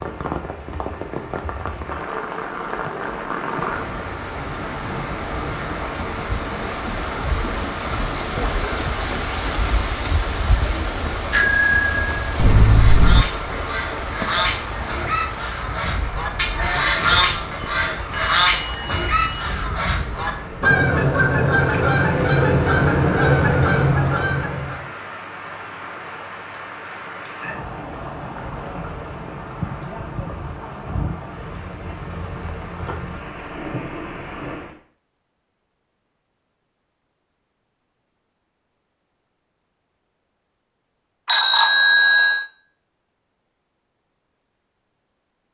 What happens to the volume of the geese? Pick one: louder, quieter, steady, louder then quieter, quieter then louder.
louder.